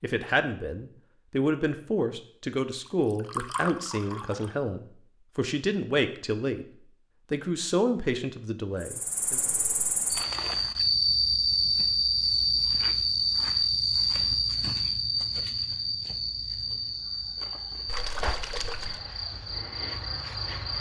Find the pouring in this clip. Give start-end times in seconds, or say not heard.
2.9-4.5, 17.9-19.0.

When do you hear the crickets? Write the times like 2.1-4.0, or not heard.
8.8-20.7.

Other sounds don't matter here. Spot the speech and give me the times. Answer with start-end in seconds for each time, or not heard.
0.0-6.7, 7.3-9.4.